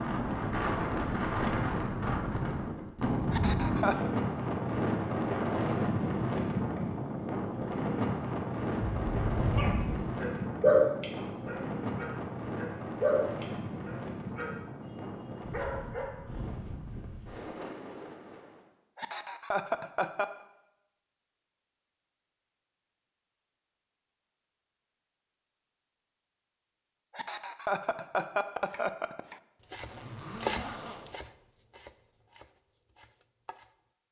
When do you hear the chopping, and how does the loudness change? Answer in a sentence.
You can hear the chopping from 28.6 to 33.8 s, getting louder then quieter.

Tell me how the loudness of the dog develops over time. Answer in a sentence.
The volume of the dog goes up, then down.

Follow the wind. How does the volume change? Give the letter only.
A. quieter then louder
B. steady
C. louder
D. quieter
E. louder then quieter
D.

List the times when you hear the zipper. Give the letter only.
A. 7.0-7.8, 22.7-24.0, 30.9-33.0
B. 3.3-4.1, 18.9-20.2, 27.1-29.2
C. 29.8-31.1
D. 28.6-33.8
C.